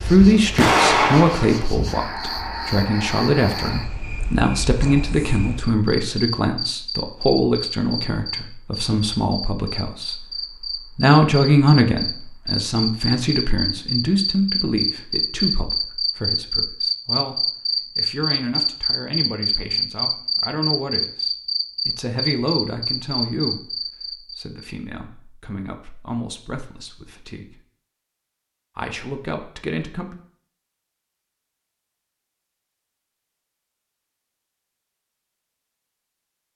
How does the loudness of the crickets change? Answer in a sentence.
The loudness of the crickets goes up.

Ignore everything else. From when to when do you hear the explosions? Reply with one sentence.
The explosions can be heard from 0.6 to 1.6 s.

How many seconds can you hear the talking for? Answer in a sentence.
The talking can be heard for 28 seconds in total.